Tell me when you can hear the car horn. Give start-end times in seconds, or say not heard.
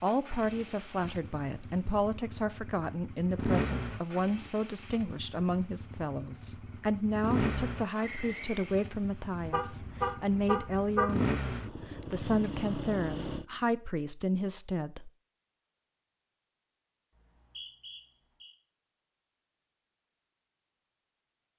9.4-11.1.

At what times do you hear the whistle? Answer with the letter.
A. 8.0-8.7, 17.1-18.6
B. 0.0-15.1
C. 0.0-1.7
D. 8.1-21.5
A.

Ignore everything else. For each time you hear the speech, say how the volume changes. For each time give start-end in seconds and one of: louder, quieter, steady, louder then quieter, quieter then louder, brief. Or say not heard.
0.0-15.1 steady.